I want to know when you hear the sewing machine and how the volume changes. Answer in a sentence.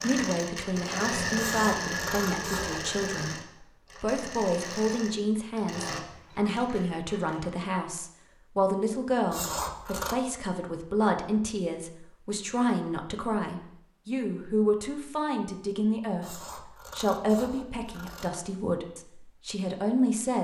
The sewing machine can be heard from 0.0 to 7.5 s, getting quieter.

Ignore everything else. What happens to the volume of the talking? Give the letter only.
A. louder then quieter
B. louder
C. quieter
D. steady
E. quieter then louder
D.